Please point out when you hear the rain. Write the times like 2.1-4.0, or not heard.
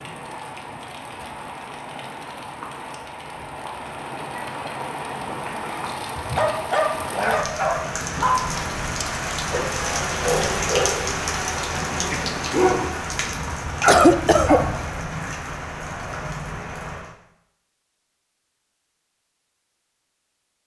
0.0-17.1.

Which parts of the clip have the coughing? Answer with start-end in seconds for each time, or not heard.
13.8-14.6.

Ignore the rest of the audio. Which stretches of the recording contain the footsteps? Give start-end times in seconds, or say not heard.
not heard.